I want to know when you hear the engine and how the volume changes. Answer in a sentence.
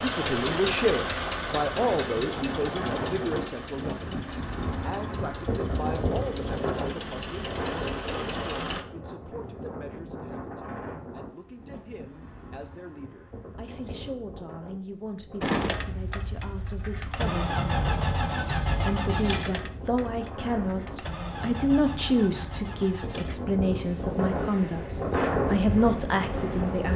You can hear the engine from 0.0 to 8.8 s, getting quieter then louder; and from 15.4 to 26.9 s, getting quieter.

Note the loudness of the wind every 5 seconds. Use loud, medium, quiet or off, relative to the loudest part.
medium, medium, quiet, quiet, medium, loud.